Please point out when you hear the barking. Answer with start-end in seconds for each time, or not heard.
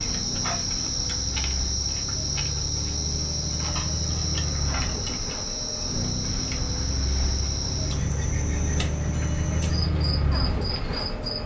not heard.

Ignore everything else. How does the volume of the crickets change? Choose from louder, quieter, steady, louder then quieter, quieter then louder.
quieter.